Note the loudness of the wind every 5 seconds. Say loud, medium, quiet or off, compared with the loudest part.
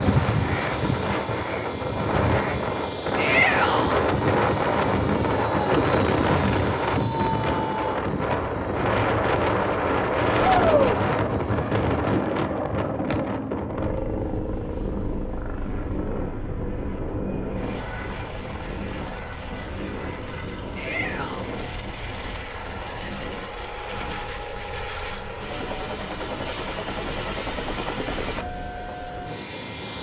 loud, loud, loud, medium, quiet, quiet.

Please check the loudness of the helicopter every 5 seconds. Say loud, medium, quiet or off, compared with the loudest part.
loud, loud, loud, medium, medium, loud.